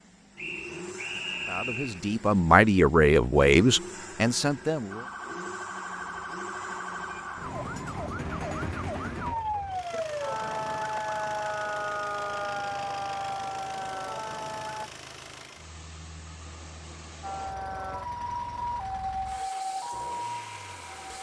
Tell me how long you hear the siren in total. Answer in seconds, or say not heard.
14 s.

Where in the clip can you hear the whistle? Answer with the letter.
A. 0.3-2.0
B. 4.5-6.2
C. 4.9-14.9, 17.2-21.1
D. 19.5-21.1
A.